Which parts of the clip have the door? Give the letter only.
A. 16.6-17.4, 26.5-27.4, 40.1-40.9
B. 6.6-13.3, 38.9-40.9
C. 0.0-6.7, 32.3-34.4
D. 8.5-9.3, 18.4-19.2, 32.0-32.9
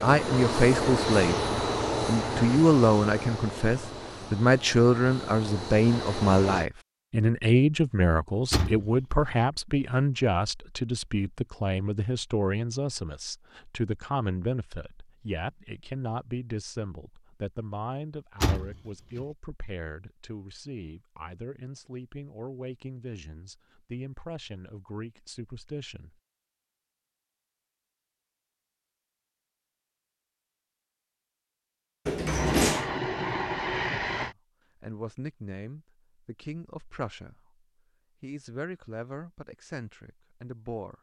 D.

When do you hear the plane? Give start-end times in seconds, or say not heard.
0.0-6.7, 32.3-34.4.